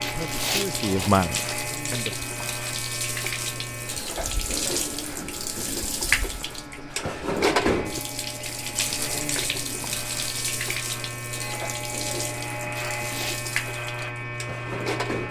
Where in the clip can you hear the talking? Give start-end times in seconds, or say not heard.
0.0-2.2.